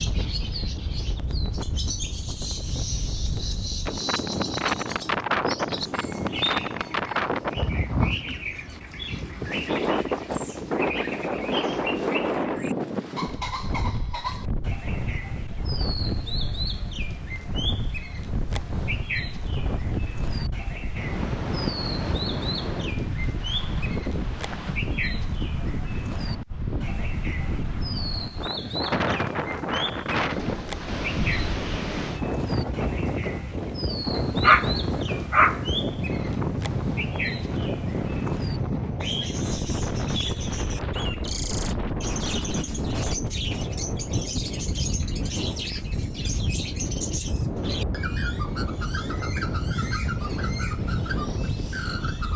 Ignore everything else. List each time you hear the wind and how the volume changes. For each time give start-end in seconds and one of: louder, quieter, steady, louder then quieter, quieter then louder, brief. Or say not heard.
0.0-52.3 steady.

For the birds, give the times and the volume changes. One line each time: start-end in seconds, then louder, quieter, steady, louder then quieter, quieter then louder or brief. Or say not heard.
0.0-52.3 steady.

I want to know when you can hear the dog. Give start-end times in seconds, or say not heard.
34.1-35.6.